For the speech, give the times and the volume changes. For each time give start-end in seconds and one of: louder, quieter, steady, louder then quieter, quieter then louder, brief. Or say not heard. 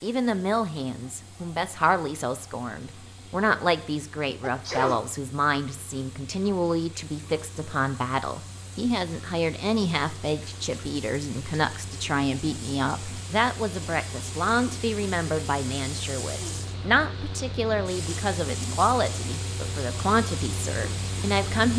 0.0-21.7 steady.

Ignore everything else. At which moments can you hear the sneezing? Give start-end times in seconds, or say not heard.
4.4-5.0.